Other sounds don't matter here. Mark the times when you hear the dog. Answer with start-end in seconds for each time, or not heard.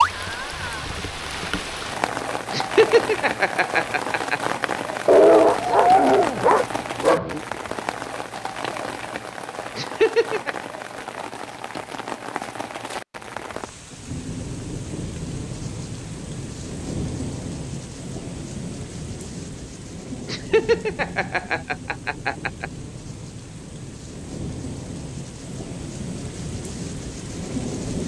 5.0-7.4.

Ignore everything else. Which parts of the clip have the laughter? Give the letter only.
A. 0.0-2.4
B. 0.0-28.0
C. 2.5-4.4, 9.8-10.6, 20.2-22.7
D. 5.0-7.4
C.